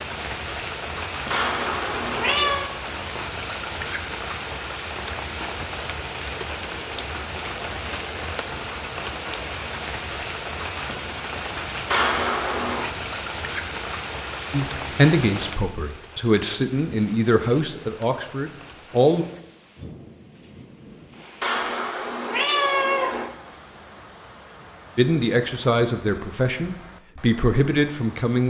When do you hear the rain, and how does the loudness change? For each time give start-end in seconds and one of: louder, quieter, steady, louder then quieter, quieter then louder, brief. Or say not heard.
0.0-28.4 quieter.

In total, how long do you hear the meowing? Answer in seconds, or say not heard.
4 s.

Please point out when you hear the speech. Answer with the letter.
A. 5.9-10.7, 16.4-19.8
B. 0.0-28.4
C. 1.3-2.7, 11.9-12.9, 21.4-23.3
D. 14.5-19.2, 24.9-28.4
D.